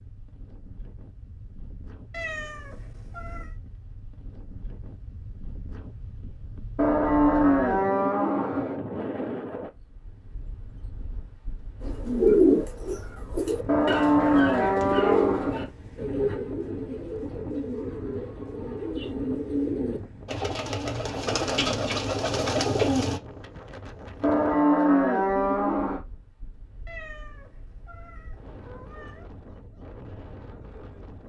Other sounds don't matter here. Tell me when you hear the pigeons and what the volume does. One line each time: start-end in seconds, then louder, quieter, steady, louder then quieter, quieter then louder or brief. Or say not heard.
11.8-23.2 quieter then louder.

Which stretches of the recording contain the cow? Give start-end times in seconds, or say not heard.
6.8-8.8, 13.7-15.7, 24.2-26.0.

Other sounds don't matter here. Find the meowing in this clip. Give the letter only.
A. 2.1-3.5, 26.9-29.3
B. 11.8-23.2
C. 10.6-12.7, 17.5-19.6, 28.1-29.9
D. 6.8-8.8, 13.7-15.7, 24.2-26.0
A.